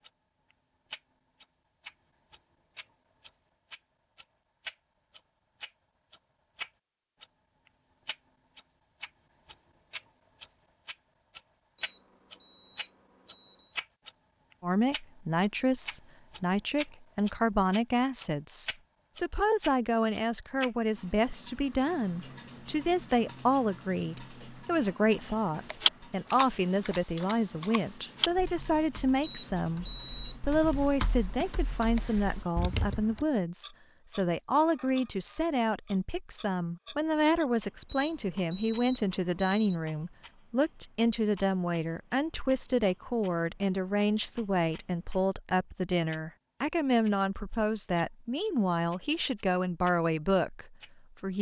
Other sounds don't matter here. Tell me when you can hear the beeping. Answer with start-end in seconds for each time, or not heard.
11.8-13.8, 29.2-30.4, 37.9-39.8.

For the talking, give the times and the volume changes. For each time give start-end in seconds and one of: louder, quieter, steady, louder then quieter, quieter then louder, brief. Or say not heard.
14.6-29.9 steady
30.4-51.3 steady.